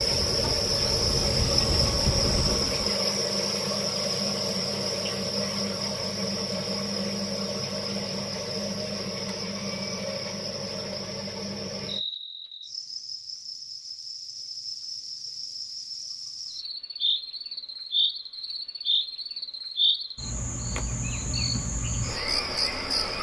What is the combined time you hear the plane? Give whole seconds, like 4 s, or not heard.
3 s.